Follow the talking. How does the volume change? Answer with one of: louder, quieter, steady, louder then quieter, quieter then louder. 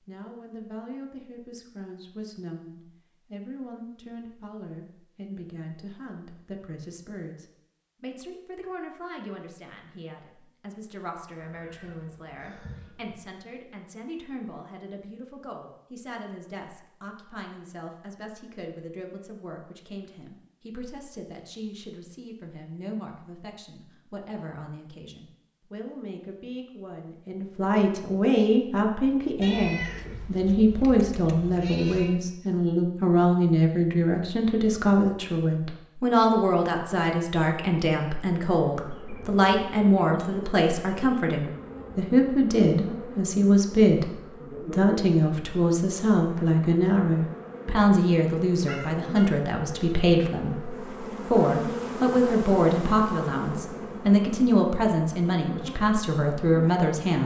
louder.